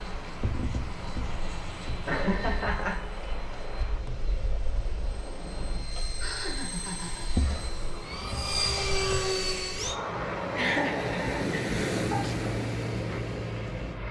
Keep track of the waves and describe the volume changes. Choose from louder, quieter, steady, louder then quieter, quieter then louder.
louder.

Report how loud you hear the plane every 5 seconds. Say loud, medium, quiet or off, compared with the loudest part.
medium, loud, loud.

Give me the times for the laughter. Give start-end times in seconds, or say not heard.
2.0-3.0, 6.0-7.2, 10.5-12.2.